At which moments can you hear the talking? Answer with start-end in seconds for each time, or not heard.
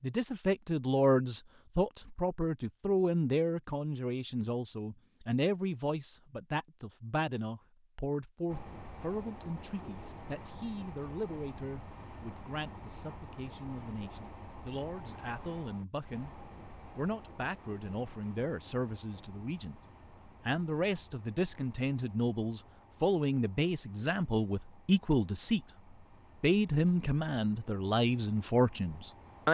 0.0-16.3, 16.9-19.8, 20.4-25.6, 26.4-29.4.